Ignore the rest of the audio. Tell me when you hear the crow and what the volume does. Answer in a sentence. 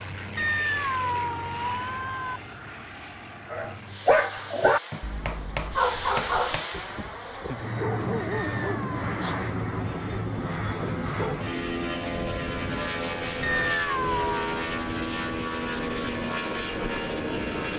The crow can't be heard in this clip.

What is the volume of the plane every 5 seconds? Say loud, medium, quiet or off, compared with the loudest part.
medium, loud, loud, loud.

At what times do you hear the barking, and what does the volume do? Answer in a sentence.
You can hear the barking from 3.5 to 11.3 s, getting quieter.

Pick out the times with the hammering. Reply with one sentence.
You can hear the hammering from 4.9 to 6.8 s.